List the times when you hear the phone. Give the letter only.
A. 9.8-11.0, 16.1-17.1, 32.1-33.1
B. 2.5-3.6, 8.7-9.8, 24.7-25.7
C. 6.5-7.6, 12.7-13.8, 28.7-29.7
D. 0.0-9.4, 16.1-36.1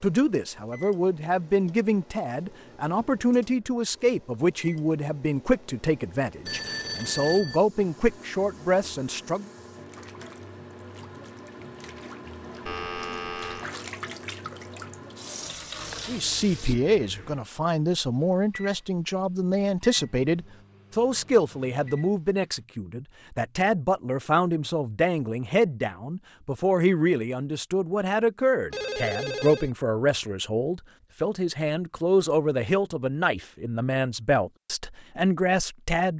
C.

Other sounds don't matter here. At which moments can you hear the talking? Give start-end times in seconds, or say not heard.
0.0-9.4, 16.1-36.1.